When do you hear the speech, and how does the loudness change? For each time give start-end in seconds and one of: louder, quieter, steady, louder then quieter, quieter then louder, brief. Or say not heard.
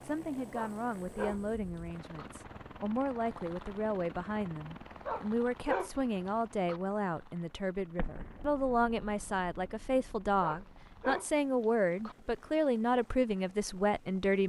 0.0-14.4 louder.